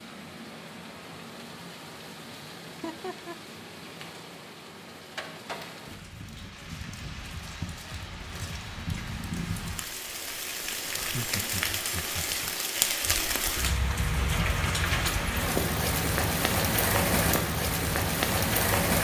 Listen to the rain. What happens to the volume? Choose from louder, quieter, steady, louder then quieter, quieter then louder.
louder.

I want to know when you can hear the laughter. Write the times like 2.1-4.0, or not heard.
2.8-3.4, 10.9-12.4.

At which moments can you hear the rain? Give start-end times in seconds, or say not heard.
0.0-18.9.